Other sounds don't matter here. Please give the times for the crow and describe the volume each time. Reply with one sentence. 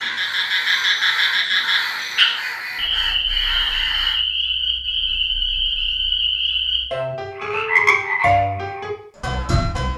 You can hear the crow from 0.0 to 4.2 s, at a steady volume.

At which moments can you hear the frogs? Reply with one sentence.
The frogs can be heard from 0.0 to 9.9 s.